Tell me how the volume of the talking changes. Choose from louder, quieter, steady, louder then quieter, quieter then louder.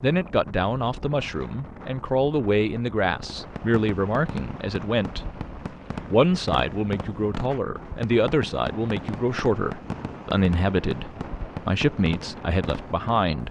steady.